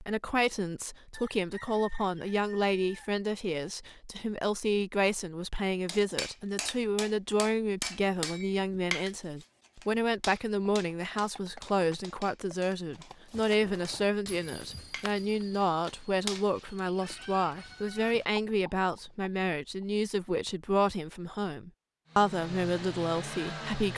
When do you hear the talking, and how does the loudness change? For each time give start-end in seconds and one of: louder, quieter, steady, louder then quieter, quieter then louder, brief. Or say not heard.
0.0-23.9 steady.